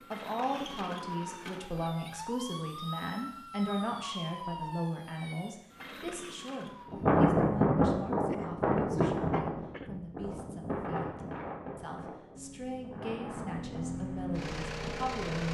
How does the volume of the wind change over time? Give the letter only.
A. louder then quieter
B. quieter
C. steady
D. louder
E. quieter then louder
B.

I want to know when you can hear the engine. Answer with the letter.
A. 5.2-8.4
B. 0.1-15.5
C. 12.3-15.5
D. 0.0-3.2
C.